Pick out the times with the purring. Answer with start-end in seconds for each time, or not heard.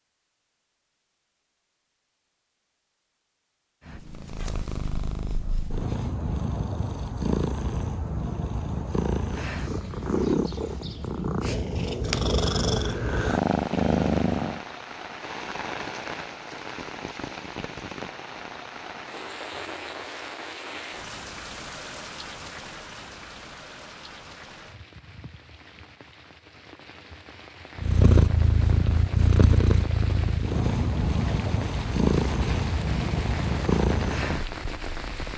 3.9-14.6, 27.8-35.3.